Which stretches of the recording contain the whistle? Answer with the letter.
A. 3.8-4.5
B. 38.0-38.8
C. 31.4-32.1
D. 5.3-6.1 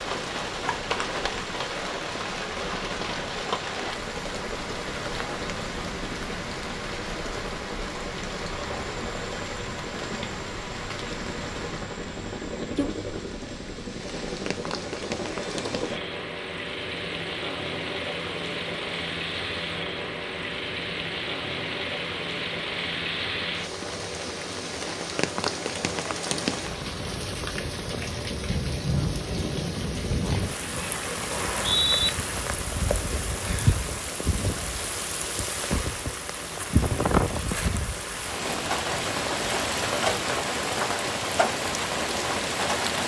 C.